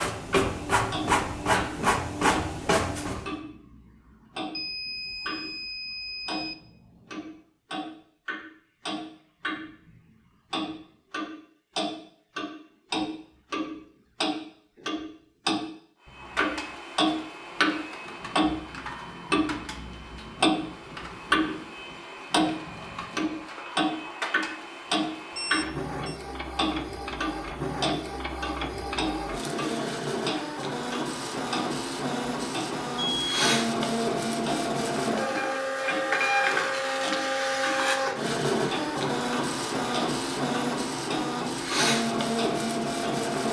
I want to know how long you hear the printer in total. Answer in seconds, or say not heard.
31 s.